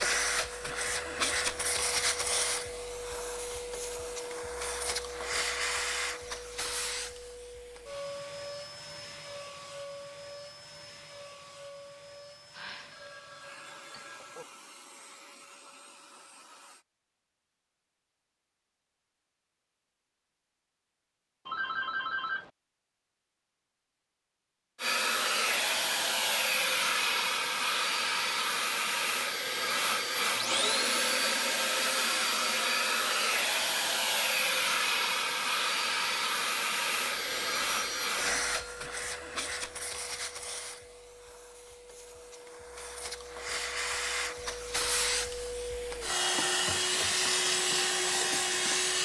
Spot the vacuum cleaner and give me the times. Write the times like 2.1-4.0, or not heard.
0.0-16.9, 24.8-49.0.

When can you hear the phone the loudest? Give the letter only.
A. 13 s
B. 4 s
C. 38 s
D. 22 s
D.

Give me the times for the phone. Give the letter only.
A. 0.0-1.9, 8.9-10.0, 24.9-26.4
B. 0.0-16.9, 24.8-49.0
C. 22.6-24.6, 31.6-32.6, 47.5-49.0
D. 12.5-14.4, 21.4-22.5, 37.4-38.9
D.